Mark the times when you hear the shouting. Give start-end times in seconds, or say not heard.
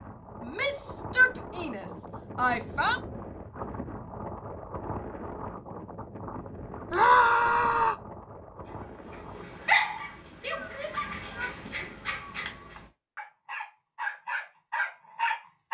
0.4-3.0, 6.9-8.0, 10.6-11.9.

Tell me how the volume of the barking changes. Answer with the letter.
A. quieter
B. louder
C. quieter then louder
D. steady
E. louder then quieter
C.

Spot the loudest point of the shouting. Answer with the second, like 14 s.
7 s.